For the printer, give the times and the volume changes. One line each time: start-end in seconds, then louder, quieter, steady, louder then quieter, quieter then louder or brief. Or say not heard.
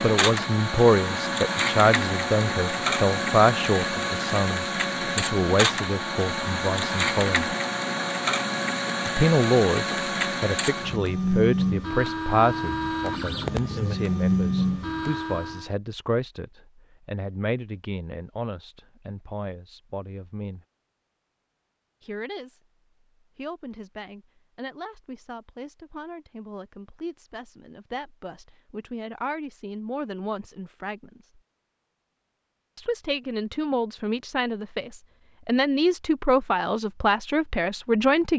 0.0-15.7 steady.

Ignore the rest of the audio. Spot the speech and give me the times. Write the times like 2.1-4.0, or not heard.
0.0-7.5, 9.1-20.6, 22.0-22.6, 23.4-31.2, 32.8-38.3.